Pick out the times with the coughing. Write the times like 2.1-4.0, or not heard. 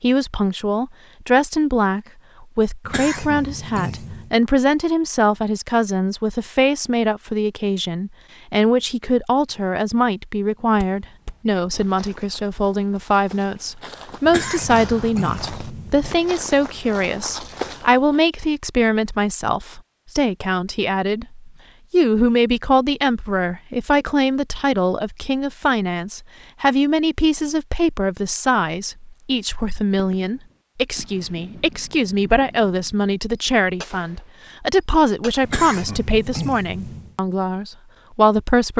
2.8-4.3, 14.2-16.1, 35.4-37.1.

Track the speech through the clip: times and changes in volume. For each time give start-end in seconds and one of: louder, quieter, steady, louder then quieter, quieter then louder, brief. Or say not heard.
0.0-38.7 steady.